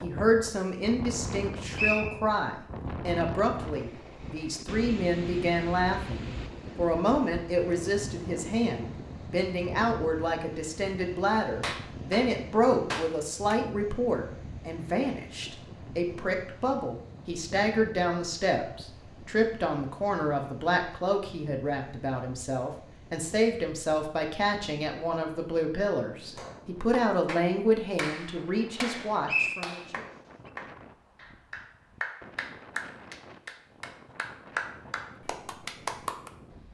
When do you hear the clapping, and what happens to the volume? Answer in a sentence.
The clapping can be heard briefly from 11.6 to 13.6 s; and from 26.4 to 36.3 s, at a steady volume.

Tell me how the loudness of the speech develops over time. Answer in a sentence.
The volume of the speech stays about the same.